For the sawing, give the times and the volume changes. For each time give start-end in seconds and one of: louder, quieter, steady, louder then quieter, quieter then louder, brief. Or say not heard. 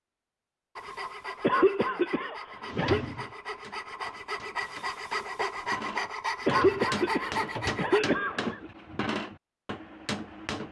0.8-8.0 louder.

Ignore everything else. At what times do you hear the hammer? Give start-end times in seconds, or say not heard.
2.5-10.6.